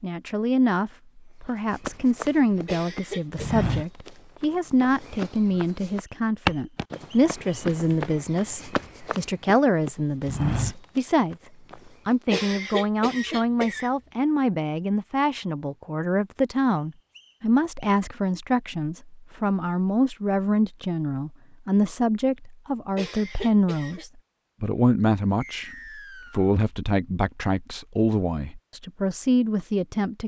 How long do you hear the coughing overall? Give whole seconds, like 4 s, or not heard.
4 s.